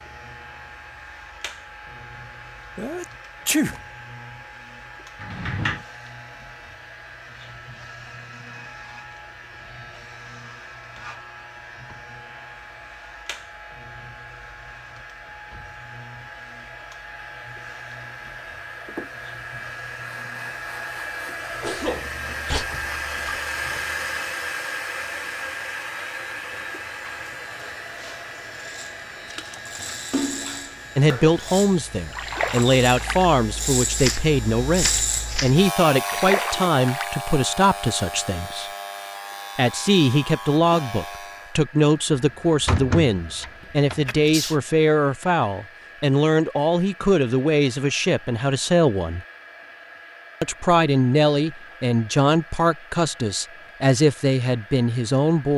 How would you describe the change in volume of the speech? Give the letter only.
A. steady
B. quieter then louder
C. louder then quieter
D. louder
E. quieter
A.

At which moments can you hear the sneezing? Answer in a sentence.
The sneezing can be heard from 2.8 to 3.8 s, from 21.6 to 22.6 s and from 43.6 to 44.6 s.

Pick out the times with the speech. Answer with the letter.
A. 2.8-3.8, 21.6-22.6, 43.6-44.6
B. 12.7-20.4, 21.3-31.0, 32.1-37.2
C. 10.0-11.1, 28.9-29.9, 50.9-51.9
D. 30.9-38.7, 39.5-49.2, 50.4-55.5
D.